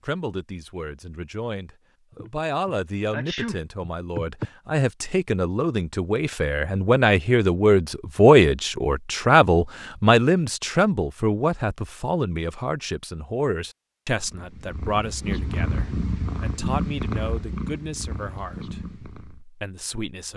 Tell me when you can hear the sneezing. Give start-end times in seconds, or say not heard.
2.1-4.5.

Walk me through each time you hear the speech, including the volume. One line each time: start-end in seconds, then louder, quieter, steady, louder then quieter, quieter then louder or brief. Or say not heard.
0.0-20.3 louder then quieter.